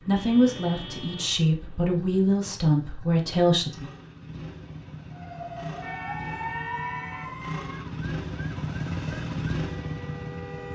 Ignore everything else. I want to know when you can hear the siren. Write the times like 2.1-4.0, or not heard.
5.1-10.7.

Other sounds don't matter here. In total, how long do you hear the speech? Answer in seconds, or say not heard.
4 s.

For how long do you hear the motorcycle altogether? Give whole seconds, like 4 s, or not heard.
11 s.